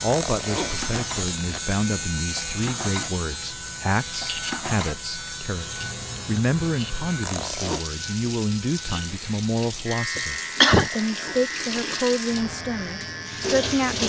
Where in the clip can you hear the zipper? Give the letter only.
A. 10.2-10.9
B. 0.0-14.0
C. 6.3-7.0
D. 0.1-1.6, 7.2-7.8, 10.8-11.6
D.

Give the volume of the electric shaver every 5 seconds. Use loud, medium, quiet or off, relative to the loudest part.
loud, medium, loud.